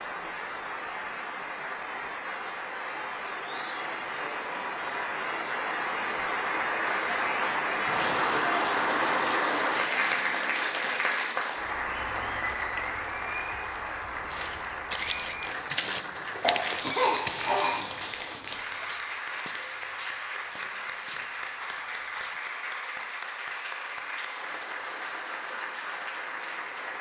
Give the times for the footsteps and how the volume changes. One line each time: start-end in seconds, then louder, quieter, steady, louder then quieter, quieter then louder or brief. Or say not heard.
14.3-22.4 quieter.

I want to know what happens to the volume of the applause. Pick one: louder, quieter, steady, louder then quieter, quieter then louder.
louder then quieter.